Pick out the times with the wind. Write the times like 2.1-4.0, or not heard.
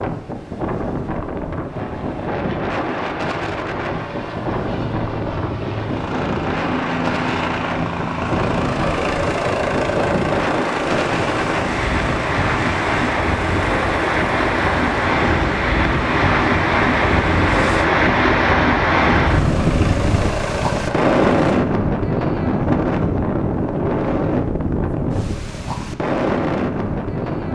0.0-27.5.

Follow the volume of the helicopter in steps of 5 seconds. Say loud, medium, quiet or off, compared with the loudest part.
medium, loud, loud, loud, loud, off.